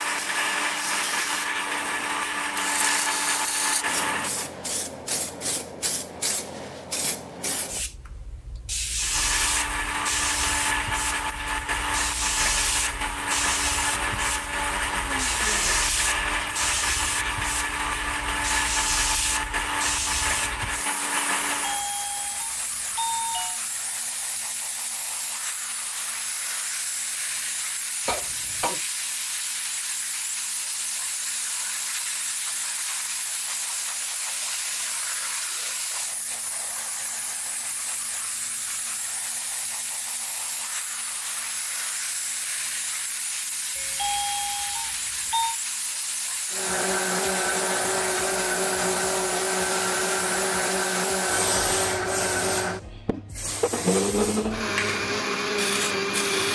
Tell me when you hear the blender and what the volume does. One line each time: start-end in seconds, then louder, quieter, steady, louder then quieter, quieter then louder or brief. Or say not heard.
0.0-4.5 steady
8.9-21.9 steady
46.5-56.4 steady.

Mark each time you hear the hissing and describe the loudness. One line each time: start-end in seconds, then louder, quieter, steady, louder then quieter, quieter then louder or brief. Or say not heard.
0.0-56.4 steady.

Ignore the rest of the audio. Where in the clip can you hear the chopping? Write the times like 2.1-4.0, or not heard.
not heard.